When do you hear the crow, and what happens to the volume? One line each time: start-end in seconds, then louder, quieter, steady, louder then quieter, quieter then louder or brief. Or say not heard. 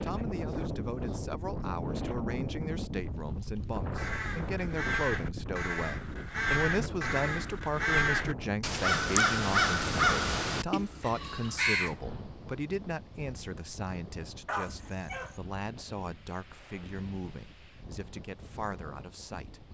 4.0-11.9 louder then quieter.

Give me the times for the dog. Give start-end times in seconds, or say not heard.
14.4-15.4.